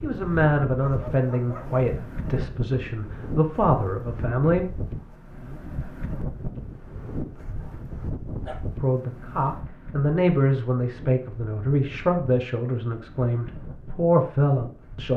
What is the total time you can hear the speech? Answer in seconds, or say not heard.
11 s.